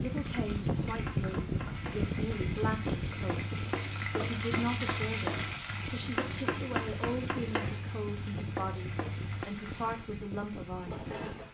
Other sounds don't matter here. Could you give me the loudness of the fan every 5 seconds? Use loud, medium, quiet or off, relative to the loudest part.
loud, medium, medium.